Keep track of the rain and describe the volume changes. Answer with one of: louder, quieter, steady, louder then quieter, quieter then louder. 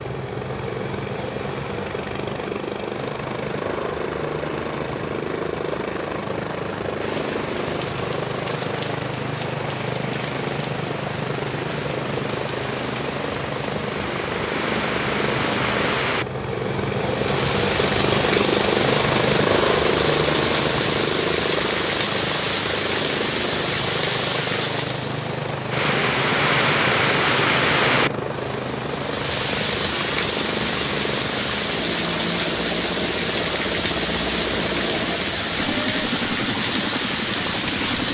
louder.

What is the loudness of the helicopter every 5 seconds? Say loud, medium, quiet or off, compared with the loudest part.
medium, medium, medium, loud, loud, medium, medium, medium.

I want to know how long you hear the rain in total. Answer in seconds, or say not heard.
31 s.